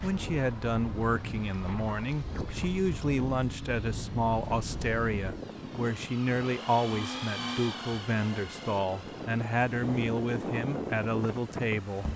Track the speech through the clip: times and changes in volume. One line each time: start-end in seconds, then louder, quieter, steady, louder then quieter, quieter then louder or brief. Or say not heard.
0.0-12.1 steady.